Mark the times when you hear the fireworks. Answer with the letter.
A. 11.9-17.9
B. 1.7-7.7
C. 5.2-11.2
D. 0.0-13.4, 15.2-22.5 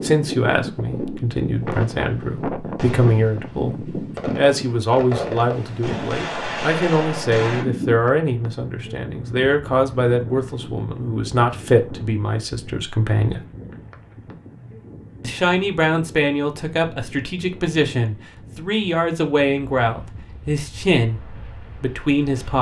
B.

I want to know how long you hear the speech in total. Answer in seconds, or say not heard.
21 s.